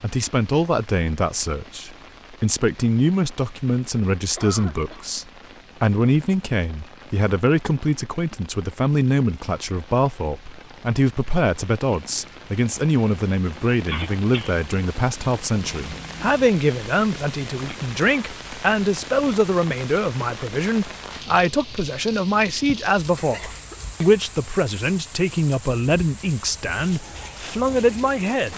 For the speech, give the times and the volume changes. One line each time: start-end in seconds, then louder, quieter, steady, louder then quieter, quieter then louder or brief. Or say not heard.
0.0-28.5 steady.